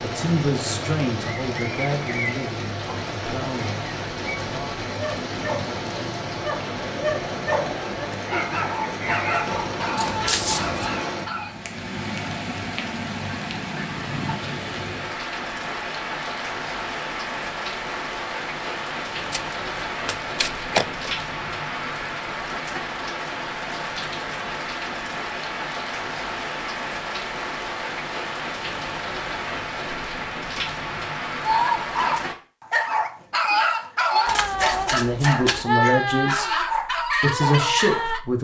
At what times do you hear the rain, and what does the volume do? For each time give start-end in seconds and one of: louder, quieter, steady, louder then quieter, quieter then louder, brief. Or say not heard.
0.0-32.4 steady.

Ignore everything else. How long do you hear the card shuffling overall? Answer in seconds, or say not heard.
4 s.